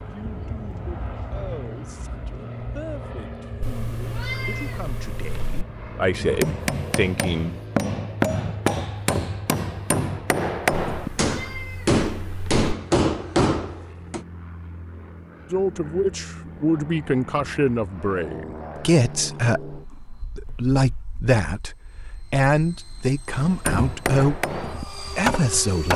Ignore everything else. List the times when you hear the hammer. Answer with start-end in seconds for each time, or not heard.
6.2-14.2, 23.3-25.9.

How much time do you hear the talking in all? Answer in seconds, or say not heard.
18 s.